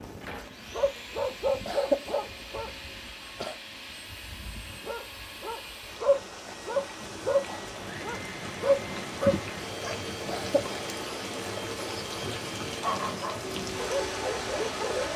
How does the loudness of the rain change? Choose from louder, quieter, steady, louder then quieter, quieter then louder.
louder.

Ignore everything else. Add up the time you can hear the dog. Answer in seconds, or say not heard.
10 s.